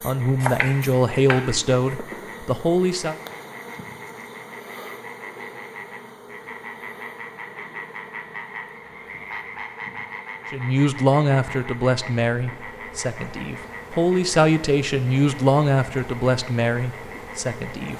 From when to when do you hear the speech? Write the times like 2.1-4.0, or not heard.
0.0-3.1, 10.5-17.9.